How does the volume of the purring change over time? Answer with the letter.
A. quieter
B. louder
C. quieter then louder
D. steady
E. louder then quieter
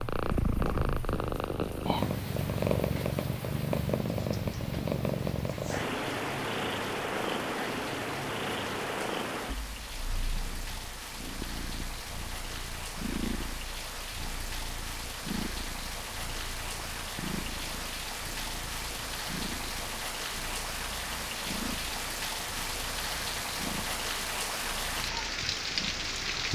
A.